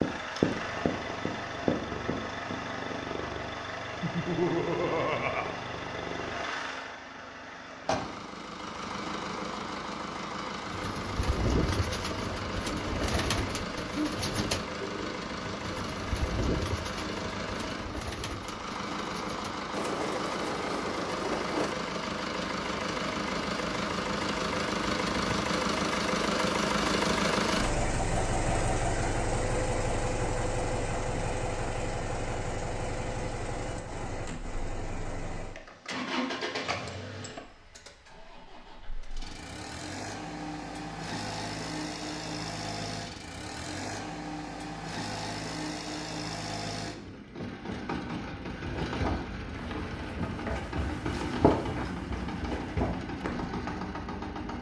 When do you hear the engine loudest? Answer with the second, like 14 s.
27 s.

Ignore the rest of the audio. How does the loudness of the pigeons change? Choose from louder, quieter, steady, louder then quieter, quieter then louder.
quieter then louder.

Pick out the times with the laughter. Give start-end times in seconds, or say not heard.
4.0-5.5.